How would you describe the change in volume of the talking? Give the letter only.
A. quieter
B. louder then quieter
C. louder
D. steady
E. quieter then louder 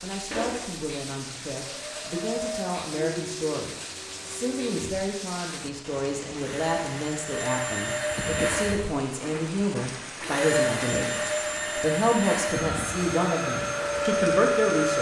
C.